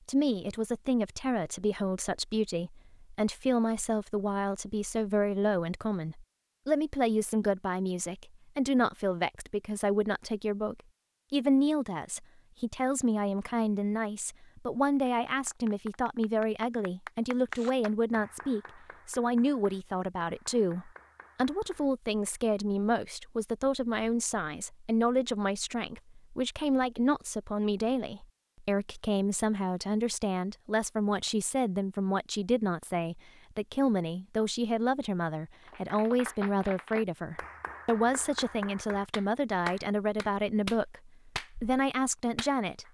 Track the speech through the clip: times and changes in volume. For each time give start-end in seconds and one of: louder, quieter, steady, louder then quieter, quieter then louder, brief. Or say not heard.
0.1-42.8 steady.